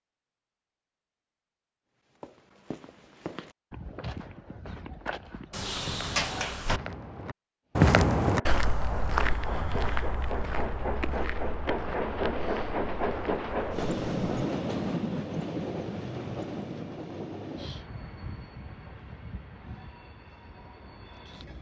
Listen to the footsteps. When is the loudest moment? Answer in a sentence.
The loudest moment of the footsteps is at 8 seconds.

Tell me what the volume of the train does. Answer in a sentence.
The loudness of the train goes up, then down.